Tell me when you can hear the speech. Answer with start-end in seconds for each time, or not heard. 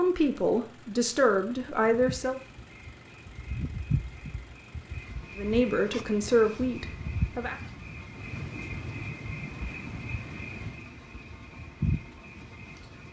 0.0-2.4, 5.3-7.6.